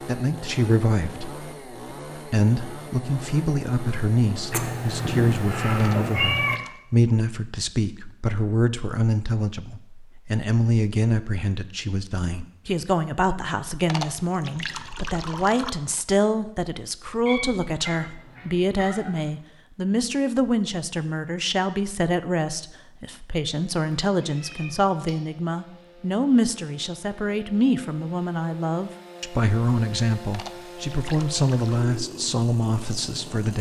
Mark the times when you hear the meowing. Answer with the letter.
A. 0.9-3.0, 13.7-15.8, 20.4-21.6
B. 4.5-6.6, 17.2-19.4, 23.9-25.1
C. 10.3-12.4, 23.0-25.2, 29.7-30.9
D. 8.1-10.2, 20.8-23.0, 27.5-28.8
B.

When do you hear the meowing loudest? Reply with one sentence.
The volume of the meowing peaks at 6 seconds.